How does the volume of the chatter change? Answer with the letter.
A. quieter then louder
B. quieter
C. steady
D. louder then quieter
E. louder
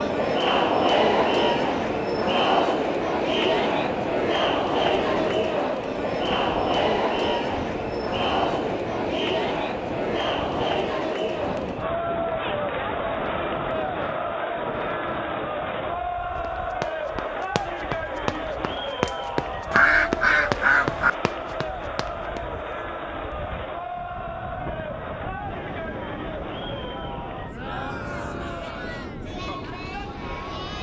B.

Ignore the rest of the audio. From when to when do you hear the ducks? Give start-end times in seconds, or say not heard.
19.7-21.1.